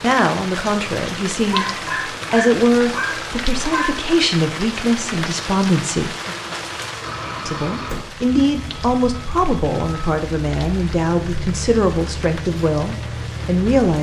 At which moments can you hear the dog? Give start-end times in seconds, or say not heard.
1.5-4.0.